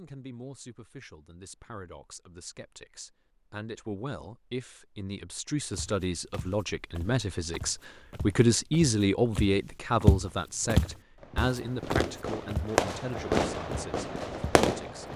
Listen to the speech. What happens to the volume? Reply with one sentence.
The loudness of the speech goes up, then down.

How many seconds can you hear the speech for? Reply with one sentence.
You can hear the speech for 15 seconds altogether.